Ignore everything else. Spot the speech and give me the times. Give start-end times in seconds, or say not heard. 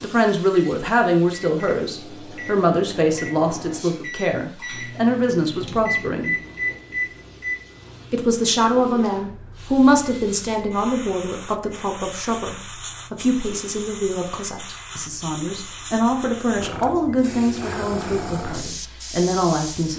0.0-6.3, 8.1-19.9.